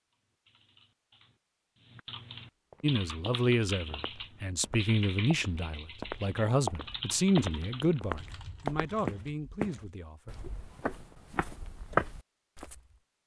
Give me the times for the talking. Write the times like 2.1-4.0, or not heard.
2.8-10.3.